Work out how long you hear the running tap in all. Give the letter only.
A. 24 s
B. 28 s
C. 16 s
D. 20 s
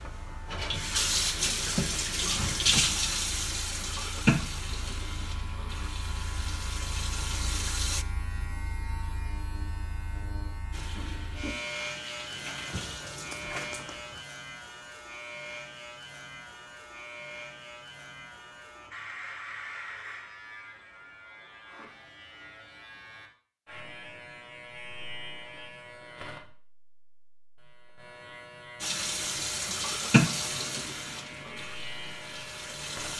C.